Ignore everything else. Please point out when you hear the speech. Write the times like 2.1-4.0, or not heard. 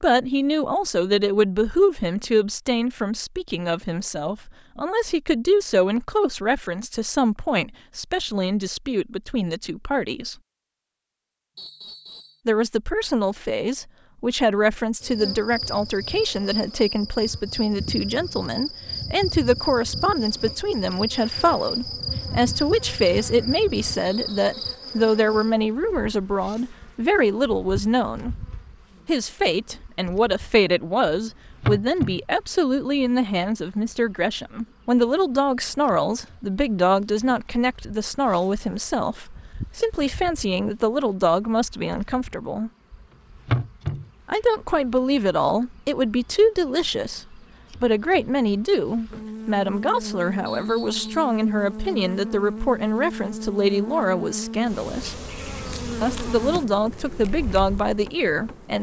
0.0-10.3, 12.4-28.4, 29.1-42.7, 44.2-55.1, 56.0-58.7.